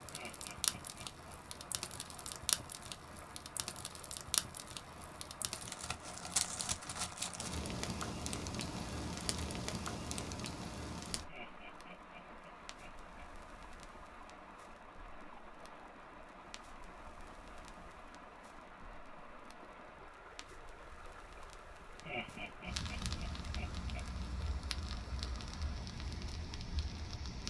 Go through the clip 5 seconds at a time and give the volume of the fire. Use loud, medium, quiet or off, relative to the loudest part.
loud, loud, medium, quiet, medium, medium.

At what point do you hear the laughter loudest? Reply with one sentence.
The volume of the laughter peaks at 22 seconds.